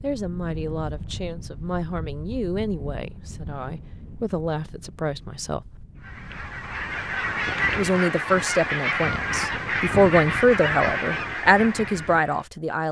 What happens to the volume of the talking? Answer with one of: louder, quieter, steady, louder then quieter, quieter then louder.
louder.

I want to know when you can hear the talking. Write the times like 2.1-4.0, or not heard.
0.0-5.8, 7.7-12.8.